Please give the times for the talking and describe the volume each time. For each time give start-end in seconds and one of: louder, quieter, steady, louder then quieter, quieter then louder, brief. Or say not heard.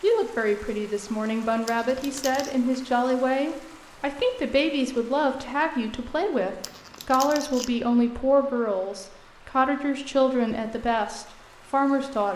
0.0-12.3 steady.